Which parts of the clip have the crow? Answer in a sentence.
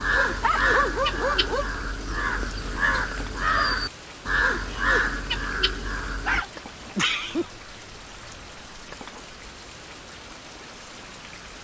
You can hear the crow from 0.0 to 6.5 s.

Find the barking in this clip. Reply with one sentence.
You can hear the barking from 0.1 to 1.7 s and from 6.2 to 7.8 s.